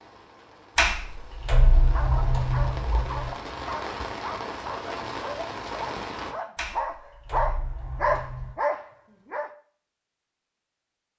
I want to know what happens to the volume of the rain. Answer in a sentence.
The loudness of the rain goes up.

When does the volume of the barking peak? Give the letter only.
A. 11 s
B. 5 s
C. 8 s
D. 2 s
C.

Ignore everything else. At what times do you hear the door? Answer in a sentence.
You can hear the door from 0.8 to 3.3 s and from 6.5 to 8.6 s.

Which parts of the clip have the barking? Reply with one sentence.
You can hear the barking from 1.9 to 9.6 s.